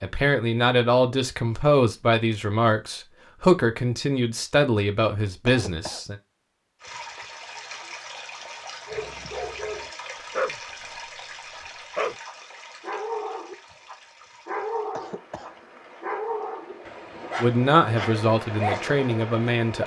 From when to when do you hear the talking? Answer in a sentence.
You can hear the talking from 0.0 to 6.2 s and from 17.4 to 19.8 s.